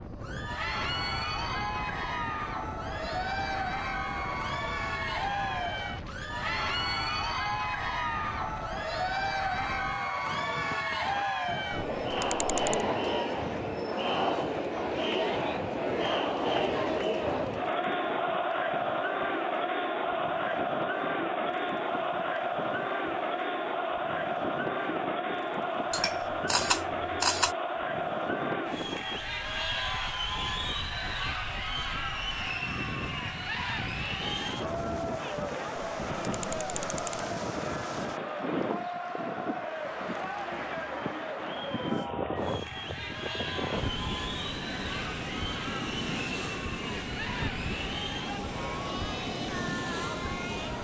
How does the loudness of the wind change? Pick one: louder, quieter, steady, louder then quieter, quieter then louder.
louder.